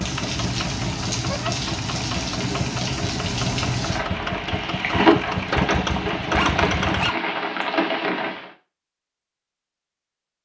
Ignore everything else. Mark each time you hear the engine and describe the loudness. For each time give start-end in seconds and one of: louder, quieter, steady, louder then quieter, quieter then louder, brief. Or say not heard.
0.0-7.1 louder.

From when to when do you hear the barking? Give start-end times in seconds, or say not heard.
6.3-7.7.